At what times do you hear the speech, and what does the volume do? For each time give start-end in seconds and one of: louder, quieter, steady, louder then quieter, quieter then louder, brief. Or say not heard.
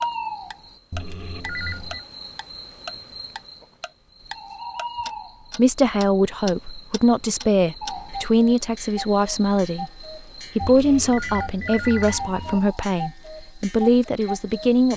5.5-14.9 steady.